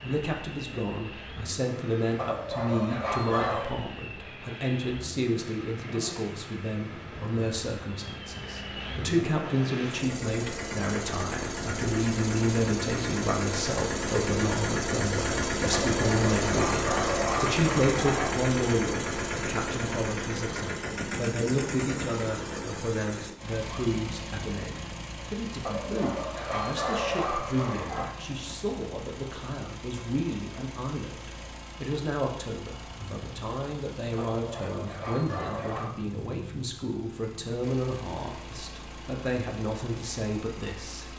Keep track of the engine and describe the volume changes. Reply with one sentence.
The loudness of the engine goes up, then down.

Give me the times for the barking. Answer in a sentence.
The barking can be heard from 2.1 to 3.8 s, from 15.7 to 18.3 s, from 25.6 to 28.1 s and from 34.1 to 36.0 s.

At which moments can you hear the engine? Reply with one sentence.
You can hear the engine from 0.0 to 41.1 s.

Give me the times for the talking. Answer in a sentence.
The talking can be heard from 0.0 to 41.0 s.